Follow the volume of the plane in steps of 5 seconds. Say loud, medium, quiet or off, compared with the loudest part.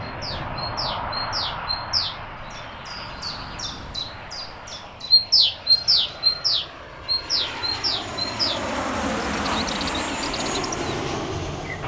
medium, loud, loud.